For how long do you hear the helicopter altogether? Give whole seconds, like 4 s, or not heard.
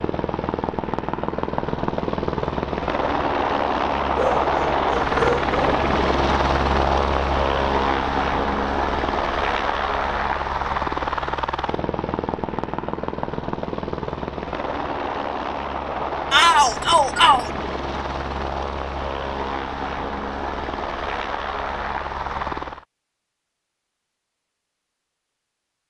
23 s.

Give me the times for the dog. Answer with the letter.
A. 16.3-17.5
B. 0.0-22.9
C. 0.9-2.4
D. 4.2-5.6
D.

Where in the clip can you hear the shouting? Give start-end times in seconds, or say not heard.
16.3-17.5.